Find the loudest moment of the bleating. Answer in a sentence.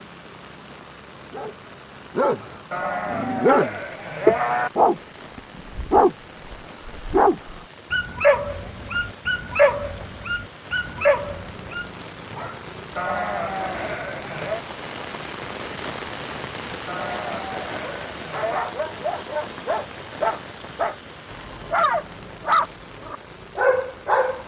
The volume of the bleating peaks at 4 seconds.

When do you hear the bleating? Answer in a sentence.
You can hear the bleating from 2.7 to 4.7 s, from 12.9 to 14.7 s and from 16.9 to 18.8 s.